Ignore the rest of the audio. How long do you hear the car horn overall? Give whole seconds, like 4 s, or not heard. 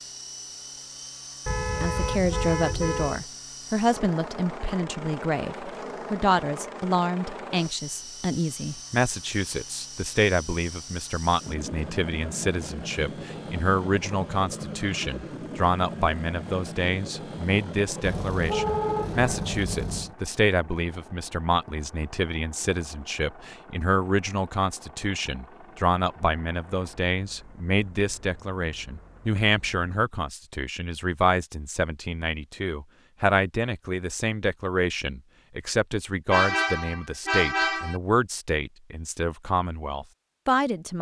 6 s.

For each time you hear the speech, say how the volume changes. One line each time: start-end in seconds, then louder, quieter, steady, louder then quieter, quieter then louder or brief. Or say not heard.
1.8-40.9 steady.